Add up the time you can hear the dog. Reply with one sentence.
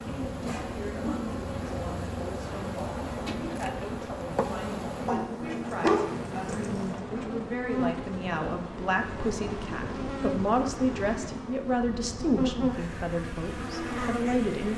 The dog can be heard for 2 seconds in total.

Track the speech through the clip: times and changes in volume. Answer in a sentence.
The speech can be heard from 0.0 to 14.7 s, getting louder.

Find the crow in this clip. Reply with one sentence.
You can't hear the crow here.